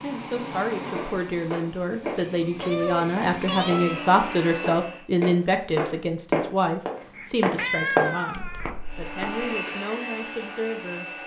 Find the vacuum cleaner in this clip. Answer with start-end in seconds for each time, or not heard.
0.0-5.0, 8.8-11.2.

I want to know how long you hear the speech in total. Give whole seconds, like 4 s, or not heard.
11 s.